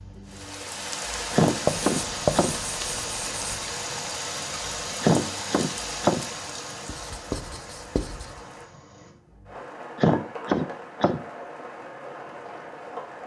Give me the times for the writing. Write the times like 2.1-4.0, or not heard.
1.6-3.7, 6.8-8.4.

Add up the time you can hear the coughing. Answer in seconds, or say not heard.
4 s.